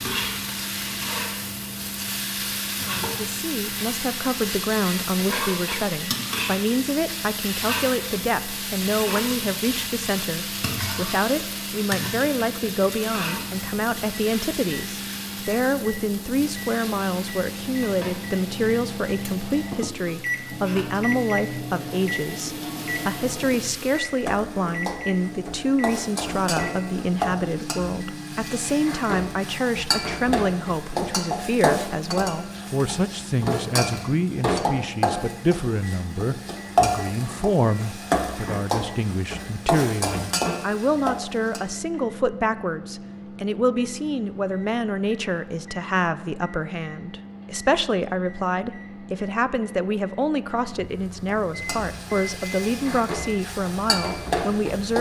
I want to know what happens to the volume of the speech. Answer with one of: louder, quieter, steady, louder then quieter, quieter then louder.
steady.